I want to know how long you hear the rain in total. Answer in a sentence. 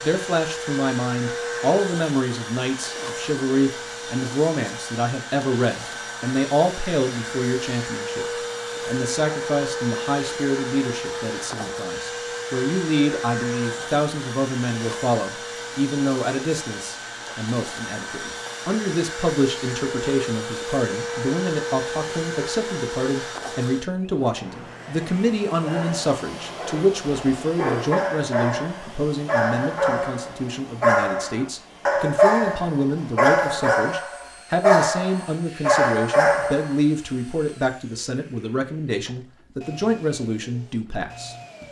The rain can't be heard in this clip.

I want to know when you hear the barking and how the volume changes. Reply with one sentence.
The barking can be heard from 25.6 to 36.8 s, getting louder.